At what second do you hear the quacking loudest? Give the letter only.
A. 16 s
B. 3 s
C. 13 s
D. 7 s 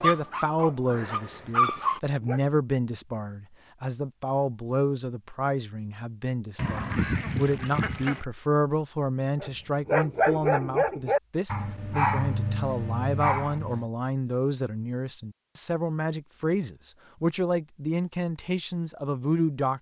D.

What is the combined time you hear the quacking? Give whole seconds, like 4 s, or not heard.
2 s.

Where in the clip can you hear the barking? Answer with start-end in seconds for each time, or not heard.
0.0-2.4, 9.4-13.8.